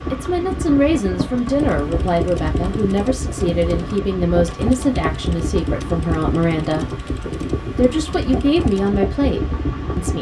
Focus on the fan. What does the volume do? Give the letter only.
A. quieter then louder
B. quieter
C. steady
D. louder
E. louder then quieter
C.